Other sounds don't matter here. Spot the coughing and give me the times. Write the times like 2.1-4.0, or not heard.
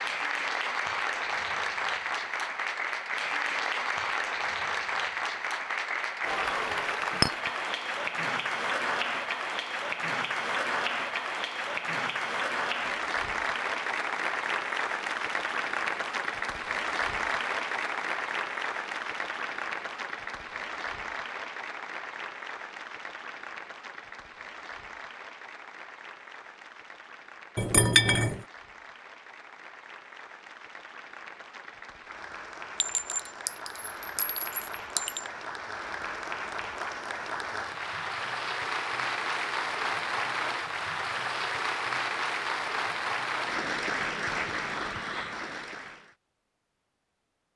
not heard.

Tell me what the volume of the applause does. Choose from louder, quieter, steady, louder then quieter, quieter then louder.
quieter then louder.